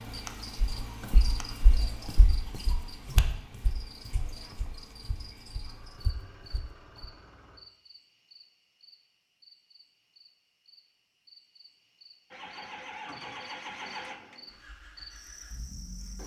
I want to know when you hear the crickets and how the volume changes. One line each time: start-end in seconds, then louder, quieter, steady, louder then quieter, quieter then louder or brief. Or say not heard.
0.0-16.2 quieter then louder.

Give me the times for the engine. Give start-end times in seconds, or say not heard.
0.0-7.6, 12.3-16.2.